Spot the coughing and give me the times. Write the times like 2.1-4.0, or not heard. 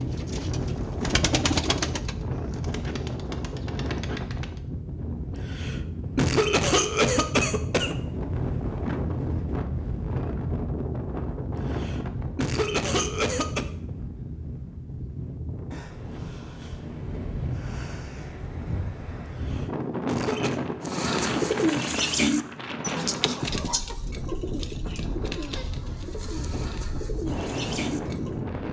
5.3-8.0, 11.6-13.7, 19.2-20.6.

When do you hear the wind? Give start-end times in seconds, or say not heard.
0.0-28.6.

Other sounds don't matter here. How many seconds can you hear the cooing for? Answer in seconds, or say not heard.
12 s.